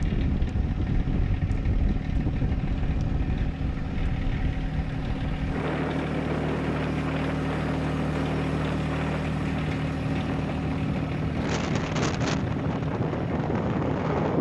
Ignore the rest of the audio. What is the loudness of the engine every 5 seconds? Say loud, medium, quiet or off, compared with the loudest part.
medium, loud, loud.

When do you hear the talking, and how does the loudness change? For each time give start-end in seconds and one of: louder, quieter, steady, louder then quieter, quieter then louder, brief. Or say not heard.
not heard.